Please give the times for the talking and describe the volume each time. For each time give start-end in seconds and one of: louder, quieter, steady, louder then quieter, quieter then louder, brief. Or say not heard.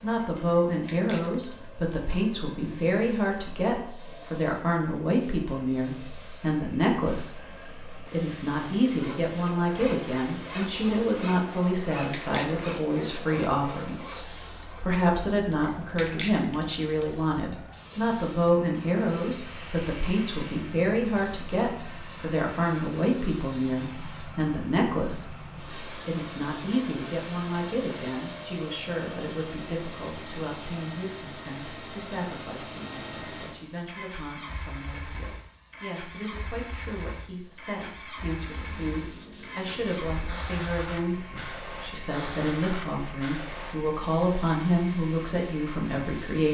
0.0-46.4 quieter then louder.